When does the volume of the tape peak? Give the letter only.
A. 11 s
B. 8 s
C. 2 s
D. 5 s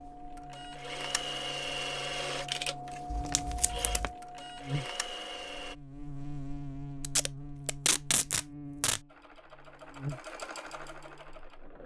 B.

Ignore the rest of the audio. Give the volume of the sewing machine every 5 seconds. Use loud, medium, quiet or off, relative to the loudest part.
loud, medium, medium.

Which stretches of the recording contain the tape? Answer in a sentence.
You can hear the tape from 3.1 to 4.1 s and from 7.0 to 9.0 s.